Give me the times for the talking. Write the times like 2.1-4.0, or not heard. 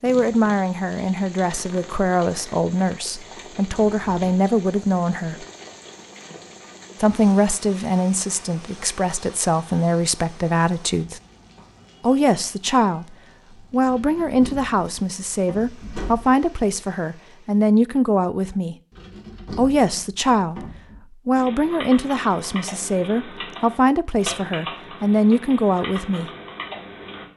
0.0-5.5, 7.0-11.2, 12.0-18.8, 19.6-20.6, 21.2-26.3.